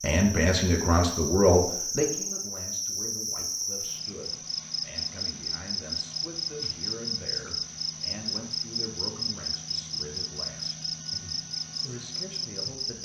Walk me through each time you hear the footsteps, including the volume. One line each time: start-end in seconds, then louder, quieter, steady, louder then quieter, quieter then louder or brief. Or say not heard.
not heard.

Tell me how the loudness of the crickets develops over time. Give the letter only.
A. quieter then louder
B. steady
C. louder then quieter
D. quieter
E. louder
B.